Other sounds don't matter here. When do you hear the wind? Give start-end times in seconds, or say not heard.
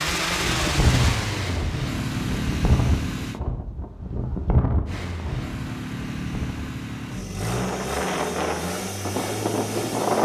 0.0-10.2.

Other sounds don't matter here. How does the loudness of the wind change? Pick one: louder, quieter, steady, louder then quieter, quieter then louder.
quieter then louder.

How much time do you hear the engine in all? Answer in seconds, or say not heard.
9 s.